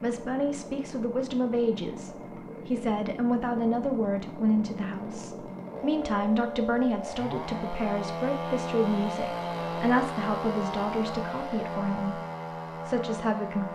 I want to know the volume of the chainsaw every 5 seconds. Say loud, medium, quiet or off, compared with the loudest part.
medium, loud, loud.